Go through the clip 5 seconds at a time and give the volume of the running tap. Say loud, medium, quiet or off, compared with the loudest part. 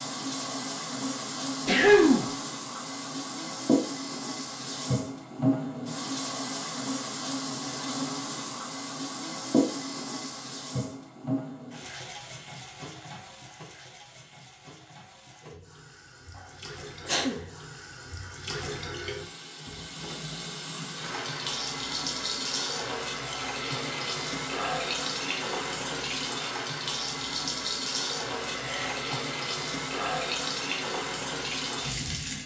loud, loud, medium, medium, loud, loud, loud.